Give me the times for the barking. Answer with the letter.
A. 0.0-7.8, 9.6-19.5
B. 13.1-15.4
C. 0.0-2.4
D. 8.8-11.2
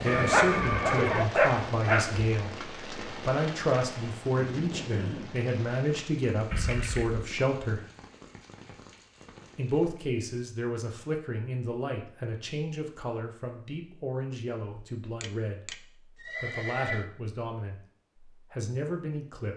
C.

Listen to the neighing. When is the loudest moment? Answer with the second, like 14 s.
1 s.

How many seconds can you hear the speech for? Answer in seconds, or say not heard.
18 s.